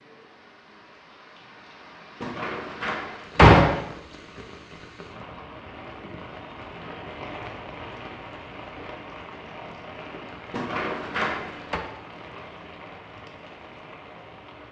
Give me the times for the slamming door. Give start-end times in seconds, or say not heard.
2.2-3.8, 10.5-11.8.